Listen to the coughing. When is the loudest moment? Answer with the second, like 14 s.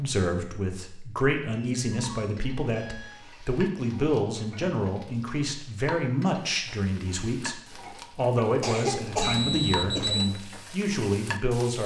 9 s.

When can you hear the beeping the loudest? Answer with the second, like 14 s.
10 s.